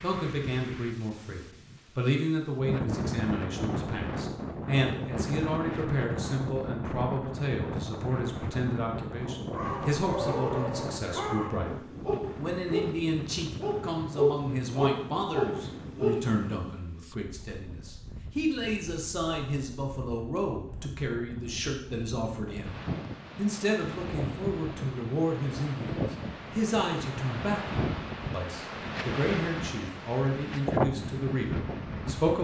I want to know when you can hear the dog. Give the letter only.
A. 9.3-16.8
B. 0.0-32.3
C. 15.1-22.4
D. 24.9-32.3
A.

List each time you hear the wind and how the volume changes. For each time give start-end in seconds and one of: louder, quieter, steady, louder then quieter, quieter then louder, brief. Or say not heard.
0.0-32.3 quieter then louder.